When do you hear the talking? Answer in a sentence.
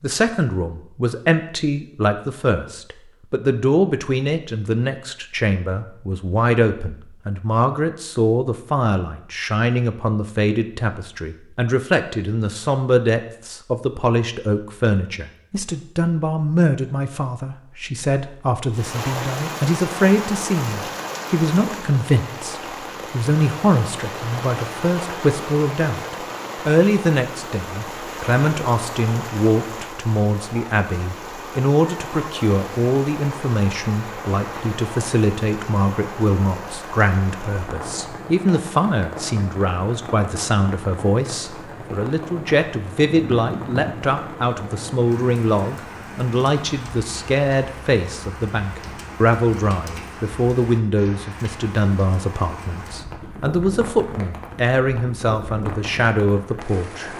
The talking can be heard from 0.0 to 57.1 s.